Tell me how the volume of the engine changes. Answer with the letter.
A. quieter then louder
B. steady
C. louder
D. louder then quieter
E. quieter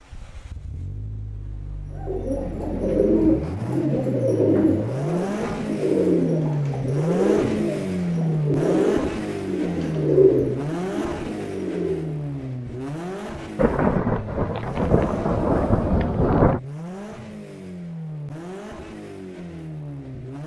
D.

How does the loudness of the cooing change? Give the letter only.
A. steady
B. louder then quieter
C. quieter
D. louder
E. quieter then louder
A.